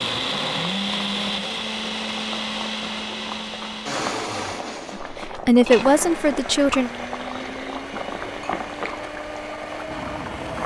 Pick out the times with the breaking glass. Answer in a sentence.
You can't hear the breaking glass here.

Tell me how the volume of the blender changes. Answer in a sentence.
The loudness of the blender goes down.